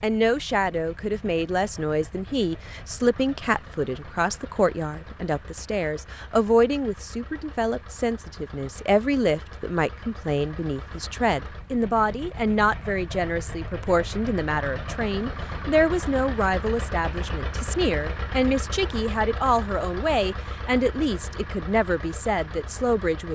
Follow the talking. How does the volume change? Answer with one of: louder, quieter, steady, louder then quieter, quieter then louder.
steady.